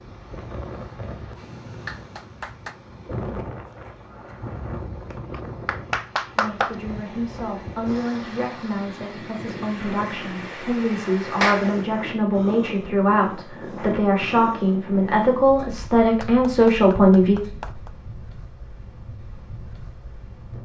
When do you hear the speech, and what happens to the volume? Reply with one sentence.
The speech can be heard from 6.3 to 17.4 s, getting louder.